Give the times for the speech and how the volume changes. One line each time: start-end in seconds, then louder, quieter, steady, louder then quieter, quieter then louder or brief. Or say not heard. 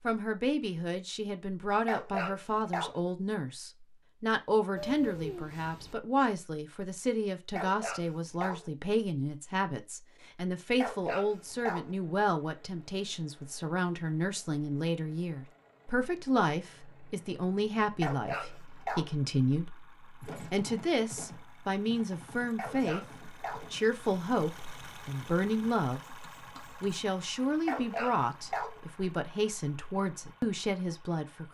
0.0-31.4 steady.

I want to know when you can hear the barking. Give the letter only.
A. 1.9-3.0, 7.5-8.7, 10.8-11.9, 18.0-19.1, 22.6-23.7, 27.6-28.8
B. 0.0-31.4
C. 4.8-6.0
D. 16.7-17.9
A.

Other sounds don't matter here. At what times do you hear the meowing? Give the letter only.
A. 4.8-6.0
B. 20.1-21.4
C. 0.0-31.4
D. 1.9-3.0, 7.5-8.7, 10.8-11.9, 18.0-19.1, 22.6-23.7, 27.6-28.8
A.